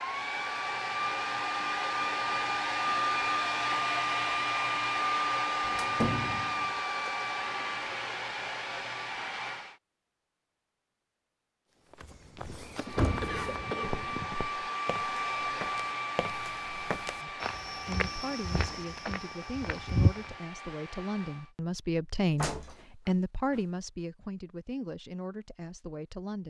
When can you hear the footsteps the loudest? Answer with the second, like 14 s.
20 s.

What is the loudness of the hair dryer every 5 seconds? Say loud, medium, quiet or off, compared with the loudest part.
loud, loud, medium, medium, quiet, off.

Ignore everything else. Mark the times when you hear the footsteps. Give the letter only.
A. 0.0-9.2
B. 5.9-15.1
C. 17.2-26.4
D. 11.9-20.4
D.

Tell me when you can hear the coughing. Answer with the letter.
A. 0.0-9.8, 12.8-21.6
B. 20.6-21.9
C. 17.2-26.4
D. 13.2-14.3
D.